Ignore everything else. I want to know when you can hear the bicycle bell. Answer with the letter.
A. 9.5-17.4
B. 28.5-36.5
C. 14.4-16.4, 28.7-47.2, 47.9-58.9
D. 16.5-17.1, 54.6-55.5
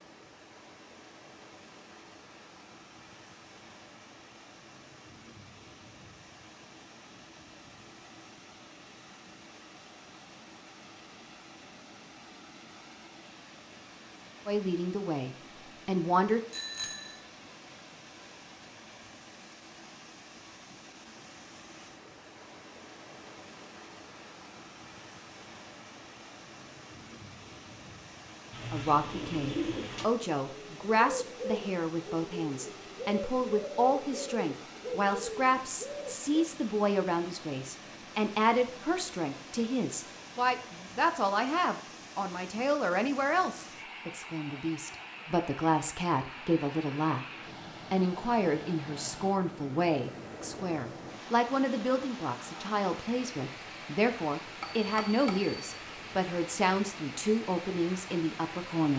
D.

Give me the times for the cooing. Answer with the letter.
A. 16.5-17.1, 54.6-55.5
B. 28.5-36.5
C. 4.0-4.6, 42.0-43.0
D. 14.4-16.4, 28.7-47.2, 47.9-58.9
B.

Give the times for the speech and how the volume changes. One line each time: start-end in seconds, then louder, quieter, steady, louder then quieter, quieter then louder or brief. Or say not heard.
14.4-16.4 brief
28.7-47.2 steady
47.9-58.9 steady.